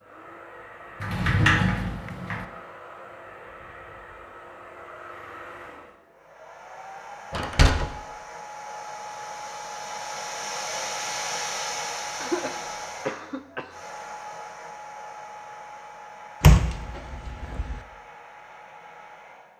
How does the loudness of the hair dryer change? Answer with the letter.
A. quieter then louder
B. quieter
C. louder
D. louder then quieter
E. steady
D.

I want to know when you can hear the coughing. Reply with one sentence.
You can hear the coughing from 12.2 to 13.8 s.